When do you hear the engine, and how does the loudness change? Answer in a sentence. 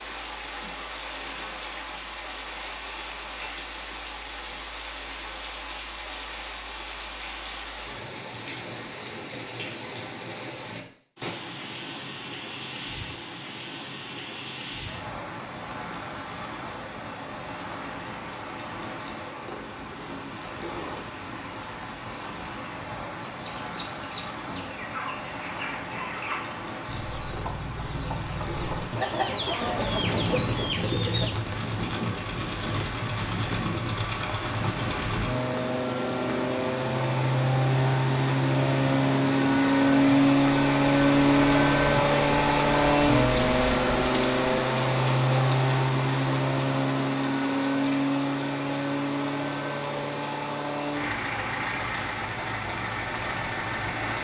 You can hear the engine from 29.6 to 54.1 s, getting louder then quieter.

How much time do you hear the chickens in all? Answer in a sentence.
You can hear the chickens for 8 seconds altogether.